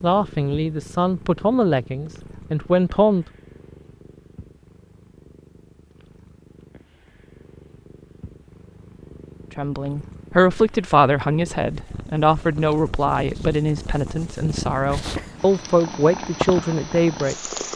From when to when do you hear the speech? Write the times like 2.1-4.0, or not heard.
0.0-3.2, 9.6-17.5.